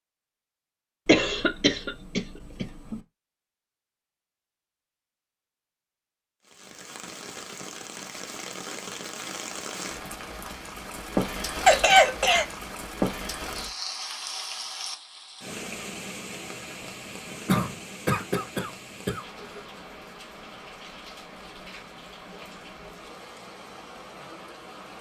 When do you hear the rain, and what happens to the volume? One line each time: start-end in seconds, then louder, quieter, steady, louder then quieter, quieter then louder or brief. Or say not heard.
6.4-24.9 louder then quieter.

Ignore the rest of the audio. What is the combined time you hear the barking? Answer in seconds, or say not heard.
not heard.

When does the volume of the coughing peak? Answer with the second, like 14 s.
12 s.